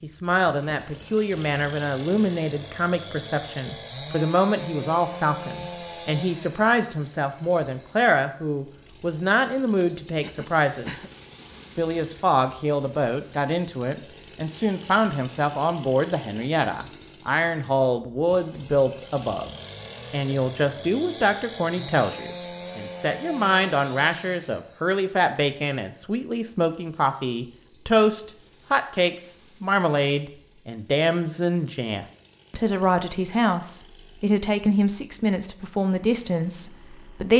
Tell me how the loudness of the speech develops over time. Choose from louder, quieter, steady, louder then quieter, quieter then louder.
steady.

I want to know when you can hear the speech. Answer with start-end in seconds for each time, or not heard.
0.0-10.9, 11.8-19.5, 20.1-37.3.